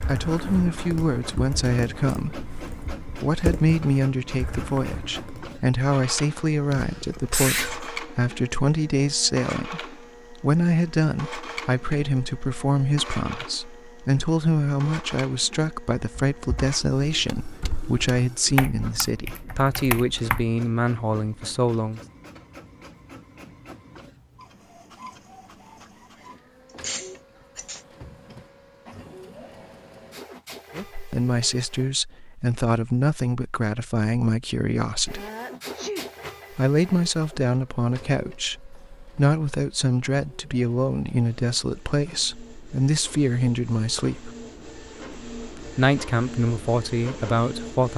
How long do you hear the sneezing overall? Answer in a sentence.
You can hear the sneezing for 3 seconds altogether.